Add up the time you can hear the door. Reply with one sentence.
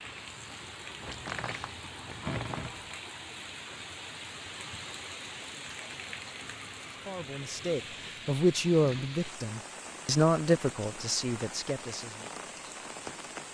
The door can be heard for 2 seconds in total.